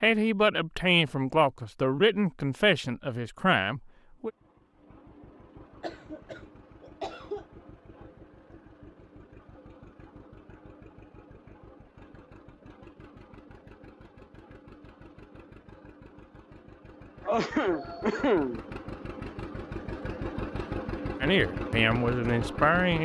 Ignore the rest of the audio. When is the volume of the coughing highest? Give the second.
18 s.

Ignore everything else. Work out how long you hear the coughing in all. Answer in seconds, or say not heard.
3 s.